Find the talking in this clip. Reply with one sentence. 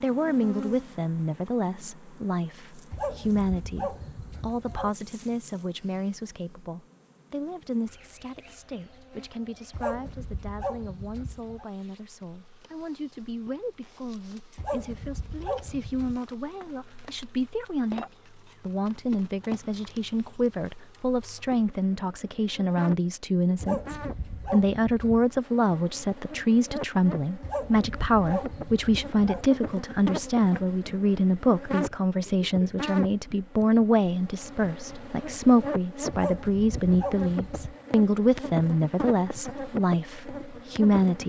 You can hear the talking from 0.0 to 41.2 s.